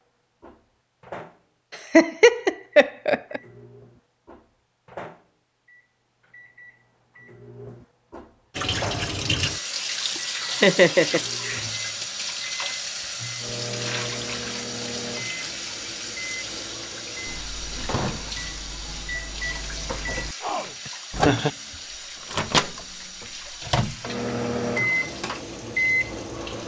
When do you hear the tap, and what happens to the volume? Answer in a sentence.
The tap can be heard from 8.5 to 26.6 s, getting quieter.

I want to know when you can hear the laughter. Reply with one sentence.
The laughter can be heard from 1.9 to 3.4 s, from 10.6 to 11.6 s and from 20.9 to 21.5 s.